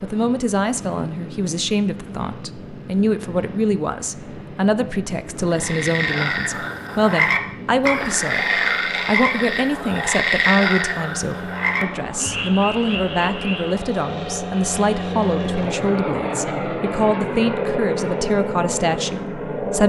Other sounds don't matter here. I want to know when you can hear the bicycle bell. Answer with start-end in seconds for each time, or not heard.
not heard.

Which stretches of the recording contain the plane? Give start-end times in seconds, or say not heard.
0.0-19.8.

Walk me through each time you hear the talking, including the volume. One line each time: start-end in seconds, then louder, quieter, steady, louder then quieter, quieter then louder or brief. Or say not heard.
0.0-19.8 steady.